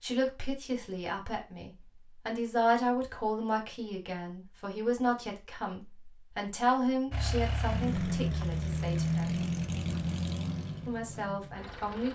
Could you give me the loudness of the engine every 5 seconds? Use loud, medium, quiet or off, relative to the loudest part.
off, loud, medium.